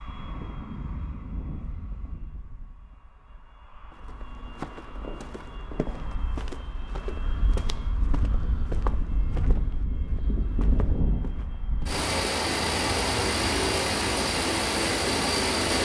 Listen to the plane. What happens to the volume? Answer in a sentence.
The loudness of the plane goes up.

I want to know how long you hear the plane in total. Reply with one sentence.
You can hear the plane for 16 seconds altogether.